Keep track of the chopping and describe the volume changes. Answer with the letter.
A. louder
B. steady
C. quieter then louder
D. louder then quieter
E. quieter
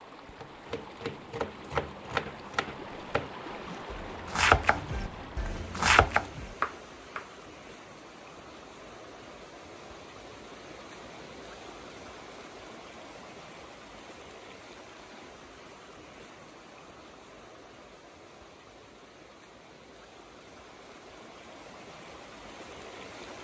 A.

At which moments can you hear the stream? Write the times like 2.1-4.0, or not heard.
0.0-23.3.